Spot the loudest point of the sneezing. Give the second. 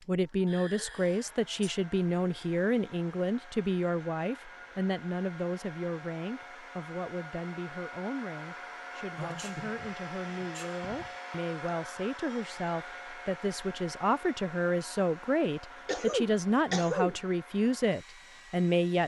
17 s.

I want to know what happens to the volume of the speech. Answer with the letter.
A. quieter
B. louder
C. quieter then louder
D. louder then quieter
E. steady
C.